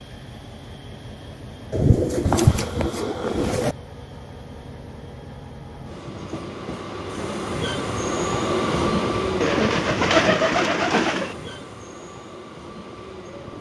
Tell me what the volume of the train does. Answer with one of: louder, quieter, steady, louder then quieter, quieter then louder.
louder then quieter.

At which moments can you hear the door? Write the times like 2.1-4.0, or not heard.
not heard.